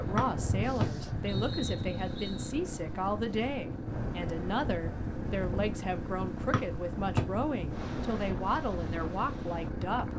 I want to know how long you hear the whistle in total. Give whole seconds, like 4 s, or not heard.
3 s.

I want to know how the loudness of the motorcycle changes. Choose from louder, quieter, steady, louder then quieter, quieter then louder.
steady.